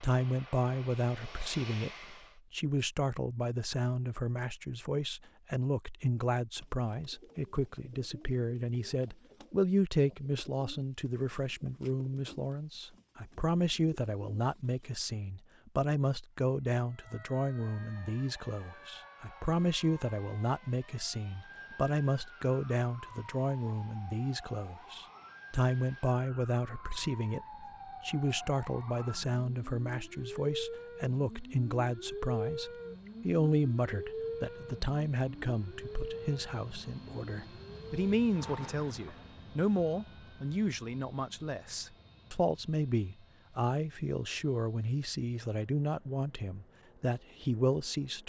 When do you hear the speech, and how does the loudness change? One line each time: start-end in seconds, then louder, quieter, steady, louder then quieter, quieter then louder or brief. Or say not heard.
0.0-48.2 steady.